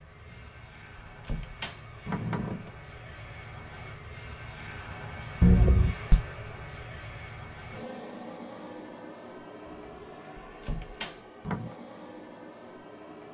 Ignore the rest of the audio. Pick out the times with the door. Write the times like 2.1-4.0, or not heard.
0.2-2.7, 5.4-6.2, 9.7-11.8.